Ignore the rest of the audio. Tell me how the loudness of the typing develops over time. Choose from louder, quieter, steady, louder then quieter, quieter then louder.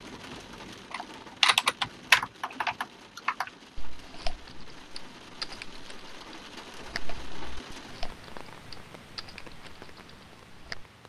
quieter.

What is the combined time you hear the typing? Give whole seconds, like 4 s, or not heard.
10 s.